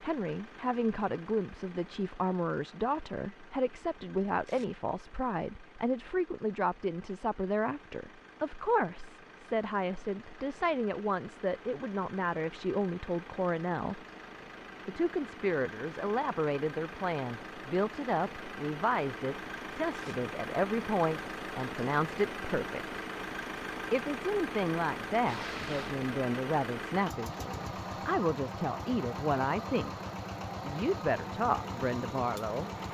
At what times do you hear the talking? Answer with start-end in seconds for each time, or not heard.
0.0-14.0, 14.8-23.0, 23.9-29.9, 30.6-32.7.